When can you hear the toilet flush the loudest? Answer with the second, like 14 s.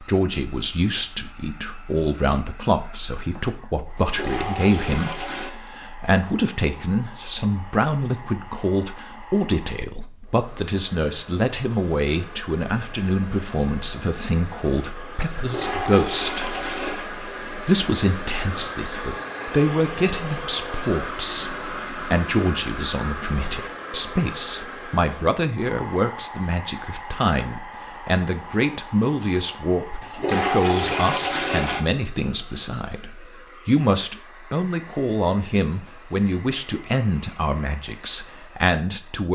31 s.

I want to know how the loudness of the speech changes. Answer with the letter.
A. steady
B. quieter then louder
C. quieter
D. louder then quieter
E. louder
A.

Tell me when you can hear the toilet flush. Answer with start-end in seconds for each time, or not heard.
3.8-5.5, 15.3-17.1, 29.8-31.8.